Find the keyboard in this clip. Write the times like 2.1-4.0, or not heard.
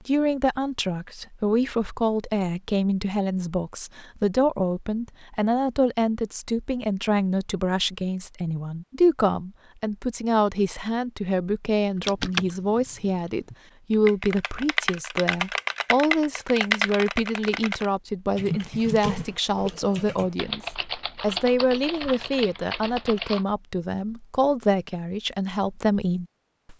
12.0-23.4.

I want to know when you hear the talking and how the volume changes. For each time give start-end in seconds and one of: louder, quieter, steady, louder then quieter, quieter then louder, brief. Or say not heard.
0.1-26.7 steady.